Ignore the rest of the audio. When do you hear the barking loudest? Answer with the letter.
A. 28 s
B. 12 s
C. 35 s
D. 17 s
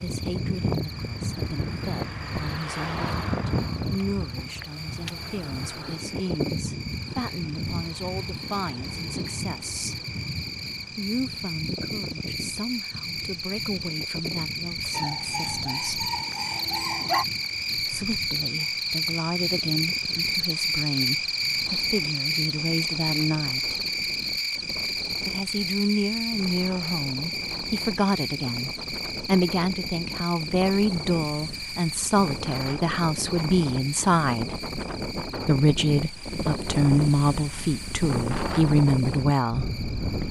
D.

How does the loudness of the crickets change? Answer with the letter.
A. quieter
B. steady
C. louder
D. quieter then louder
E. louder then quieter
E.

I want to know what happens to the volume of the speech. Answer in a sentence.
The loudness of the speech goes up.